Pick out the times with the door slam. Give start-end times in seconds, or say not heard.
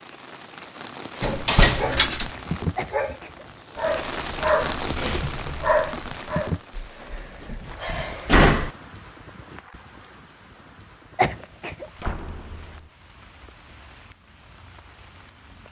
1.2-2.2, 6.8-8.7, 12.0-12.9.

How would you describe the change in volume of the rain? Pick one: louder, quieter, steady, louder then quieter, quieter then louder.
quieter.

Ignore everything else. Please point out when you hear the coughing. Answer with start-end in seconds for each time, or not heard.
2.8-3.9, 11.2-11.9.